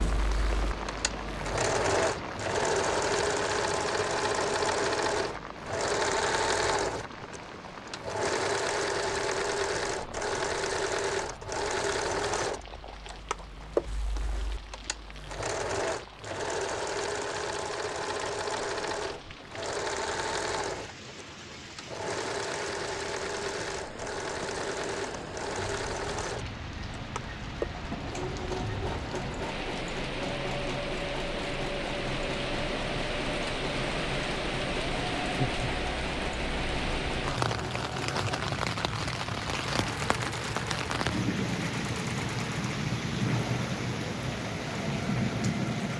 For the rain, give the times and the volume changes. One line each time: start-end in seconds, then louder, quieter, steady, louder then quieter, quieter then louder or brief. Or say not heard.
0.0-45.9 quieter then louder.